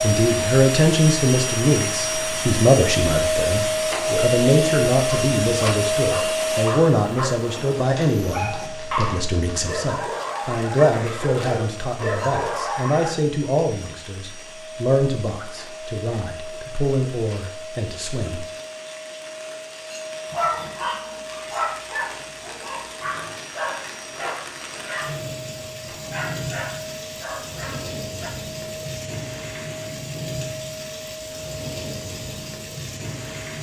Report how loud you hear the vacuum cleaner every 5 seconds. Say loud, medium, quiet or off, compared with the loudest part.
loud, loud, quiet, quiet, quiet, quiet, quiet.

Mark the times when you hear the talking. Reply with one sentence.
The talking can be heard from 0.0 to 18.4 s.